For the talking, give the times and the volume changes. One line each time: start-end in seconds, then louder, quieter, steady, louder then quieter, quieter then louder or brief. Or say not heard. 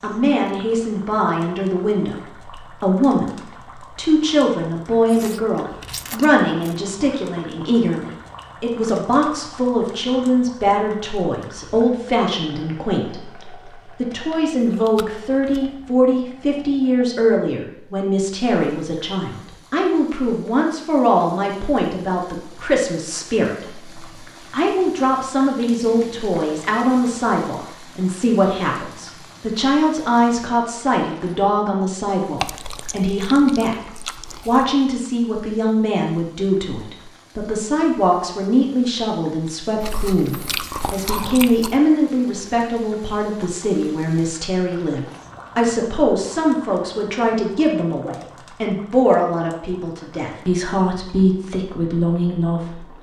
0.0-52.9 steady.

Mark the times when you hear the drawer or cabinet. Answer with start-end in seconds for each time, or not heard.
not heard.